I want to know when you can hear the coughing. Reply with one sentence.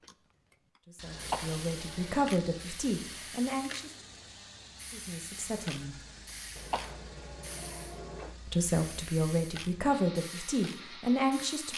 The coughing can be heard from 1.1 to 2.3 s and from 6.5 to 8.3 s.